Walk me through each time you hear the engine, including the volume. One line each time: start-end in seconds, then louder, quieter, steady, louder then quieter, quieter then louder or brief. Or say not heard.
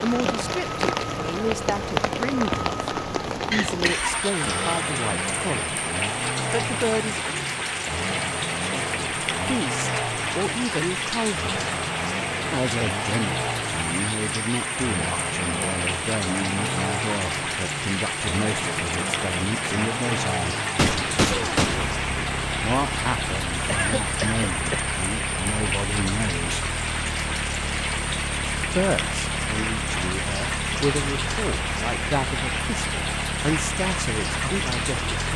0.0-35.3 steady.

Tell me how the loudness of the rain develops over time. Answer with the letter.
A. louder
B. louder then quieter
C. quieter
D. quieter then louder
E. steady
E.